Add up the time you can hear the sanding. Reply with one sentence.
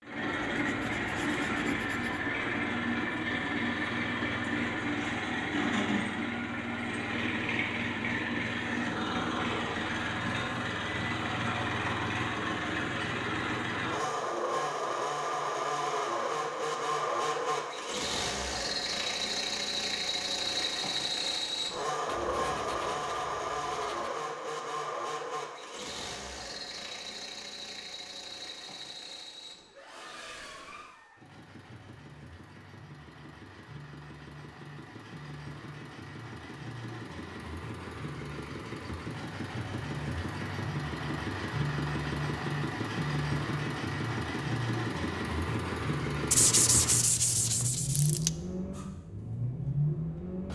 The sanding can be heard for 6 seconds in total.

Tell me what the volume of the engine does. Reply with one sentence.
The loudness of the engine goes down, then up.